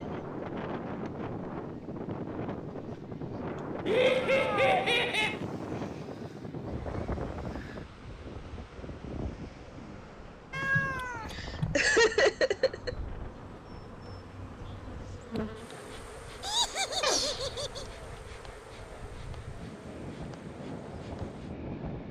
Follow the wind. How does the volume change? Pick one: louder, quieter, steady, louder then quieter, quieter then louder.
quieter then louder.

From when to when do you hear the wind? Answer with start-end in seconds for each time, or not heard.
0.0-22.0.